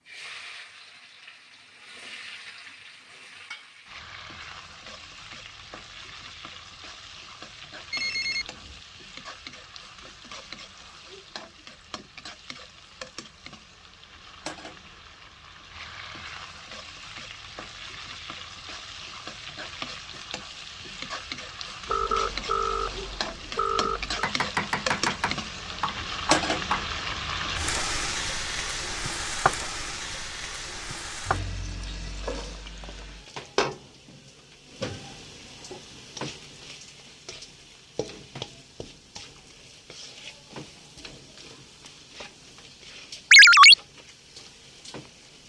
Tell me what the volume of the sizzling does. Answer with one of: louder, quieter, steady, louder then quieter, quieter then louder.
louder then quieter.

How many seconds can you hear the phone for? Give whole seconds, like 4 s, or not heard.
3 s.